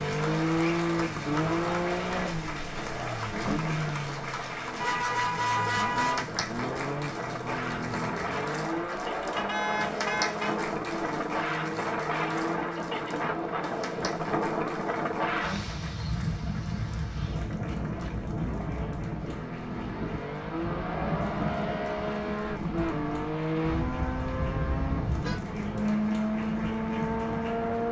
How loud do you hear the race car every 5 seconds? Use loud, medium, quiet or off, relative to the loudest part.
loud, medium, medium, medium, loud, loud.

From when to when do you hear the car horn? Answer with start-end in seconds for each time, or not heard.
4.8-6.3, 9.3-10.6, 23.6-25.4.